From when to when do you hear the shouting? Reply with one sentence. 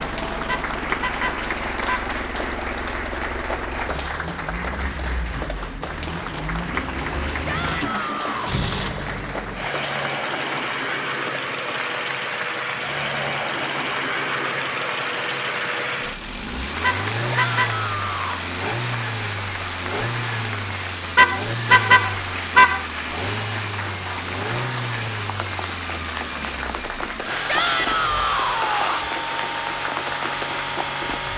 You can hear the shouting from 7.5 to 8.6 s, from 17.3 to 18.4 s and from 27.4 to 29.1 s.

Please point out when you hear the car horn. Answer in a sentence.
You can hear the car horn from 0.5 to 2.1 s, from 16.8 to 17.9 s and from 21.1 to 22.9 s.